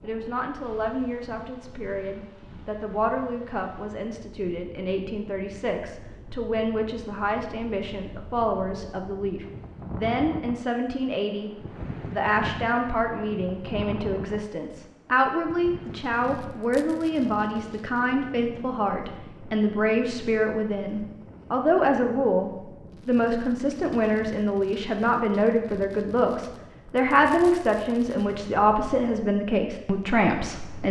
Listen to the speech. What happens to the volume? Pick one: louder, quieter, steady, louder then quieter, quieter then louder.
louder.